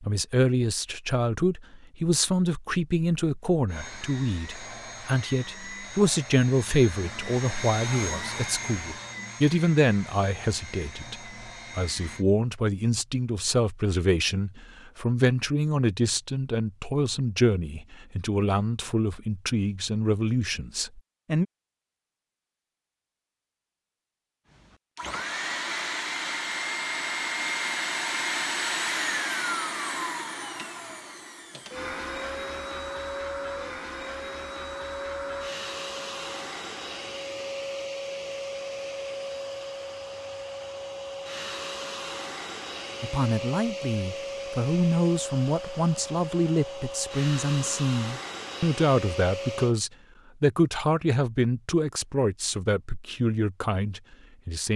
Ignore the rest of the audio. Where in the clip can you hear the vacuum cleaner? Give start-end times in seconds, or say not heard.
3.6-12.2, 24.5-49.8.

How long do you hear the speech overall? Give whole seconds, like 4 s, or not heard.
33 s.